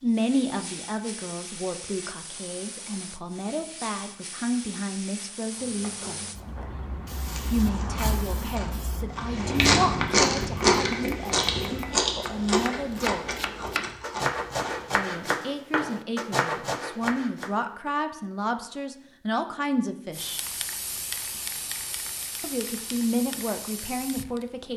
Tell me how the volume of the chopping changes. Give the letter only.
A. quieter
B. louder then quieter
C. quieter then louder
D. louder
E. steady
D.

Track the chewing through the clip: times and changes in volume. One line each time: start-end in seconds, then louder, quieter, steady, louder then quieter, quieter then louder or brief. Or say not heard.
5.5-14.9 louder then quieter.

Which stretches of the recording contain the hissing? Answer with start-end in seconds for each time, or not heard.
0.0-9.5, 20.1-24.7.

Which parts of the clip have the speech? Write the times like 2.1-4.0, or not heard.
0.0-6.2, 7.5-13.3, 14.9-20.4, 22.4-24.7.